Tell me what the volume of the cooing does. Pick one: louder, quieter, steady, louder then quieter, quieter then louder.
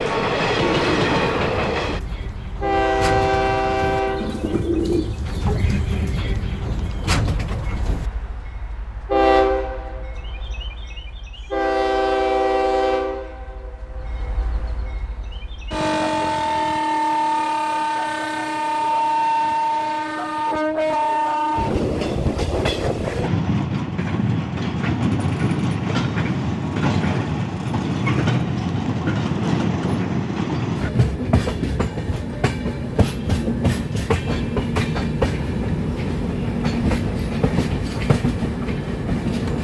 louder.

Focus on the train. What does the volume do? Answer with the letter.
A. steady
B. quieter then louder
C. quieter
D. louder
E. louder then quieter
A.